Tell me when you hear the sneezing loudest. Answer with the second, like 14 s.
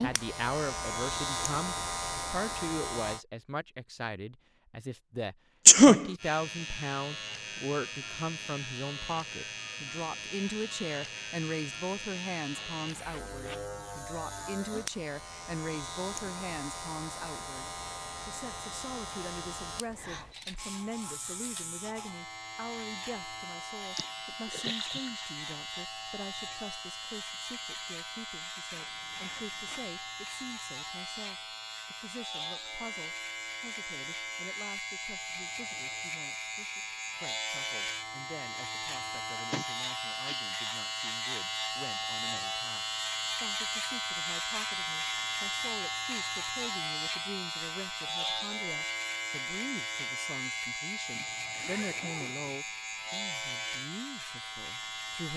6 s.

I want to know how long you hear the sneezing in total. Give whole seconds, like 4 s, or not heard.
3 s.